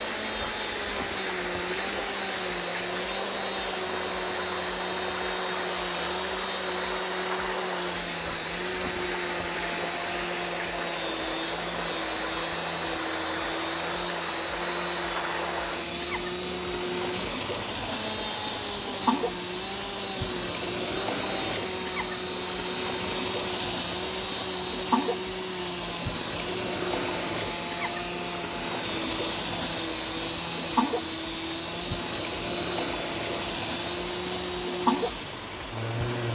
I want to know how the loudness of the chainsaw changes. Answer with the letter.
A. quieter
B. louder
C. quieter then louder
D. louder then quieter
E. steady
E.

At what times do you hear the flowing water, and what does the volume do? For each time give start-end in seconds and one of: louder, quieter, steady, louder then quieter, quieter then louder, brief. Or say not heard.
0.0-36.3 steady.